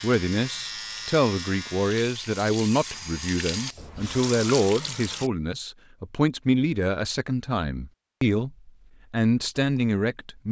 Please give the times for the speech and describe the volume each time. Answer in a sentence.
The speech can be heard from 0.0 to 10.4 s, at a steady volume.